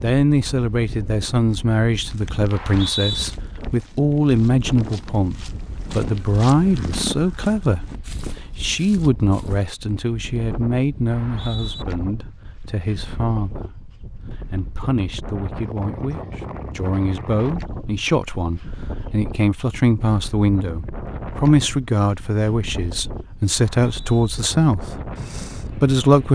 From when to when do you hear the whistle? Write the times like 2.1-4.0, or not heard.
2.5-3.2, 11.1-11.8, 23.7-24.3.